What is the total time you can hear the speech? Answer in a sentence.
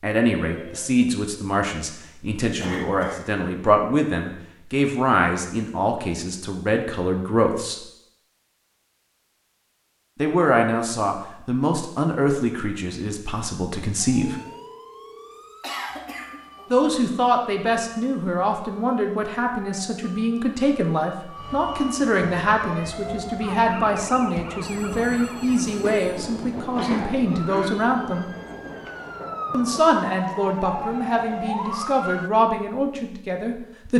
You can hear the speech for 28 seconds altogether.